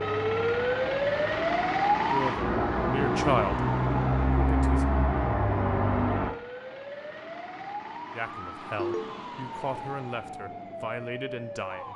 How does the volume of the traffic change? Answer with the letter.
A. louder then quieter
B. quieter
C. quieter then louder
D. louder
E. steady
D.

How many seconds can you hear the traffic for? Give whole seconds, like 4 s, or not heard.
6 s.